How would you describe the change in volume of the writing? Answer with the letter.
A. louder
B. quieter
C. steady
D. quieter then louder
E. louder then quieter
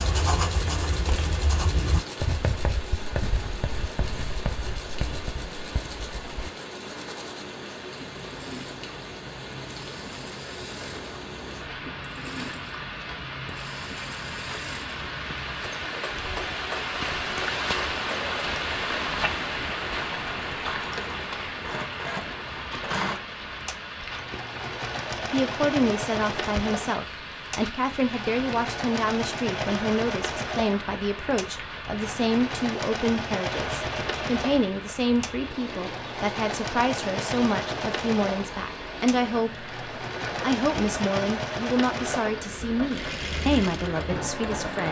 B.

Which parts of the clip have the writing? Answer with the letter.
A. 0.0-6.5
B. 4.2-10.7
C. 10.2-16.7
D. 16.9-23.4
A.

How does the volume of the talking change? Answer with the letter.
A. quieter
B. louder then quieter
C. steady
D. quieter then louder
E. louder
C.